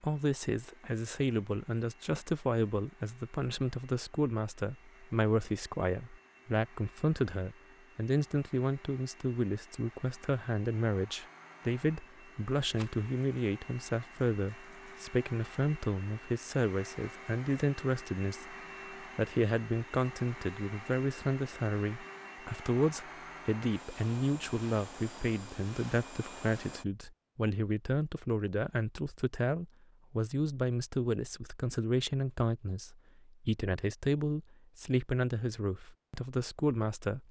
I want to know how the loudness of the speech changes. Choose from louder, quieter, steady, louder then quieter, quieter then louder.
steady.